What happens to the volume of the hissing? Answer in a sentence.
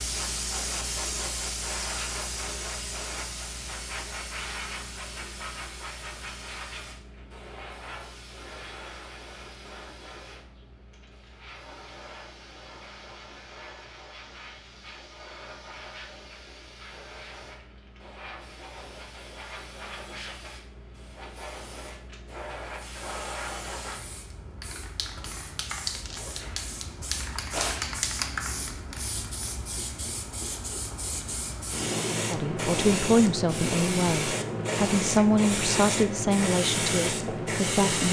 The loudness of the hissing goes down, then up.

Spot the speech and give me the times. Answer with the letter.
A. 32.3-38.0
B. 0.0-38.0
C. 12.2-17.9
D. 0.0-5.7
A.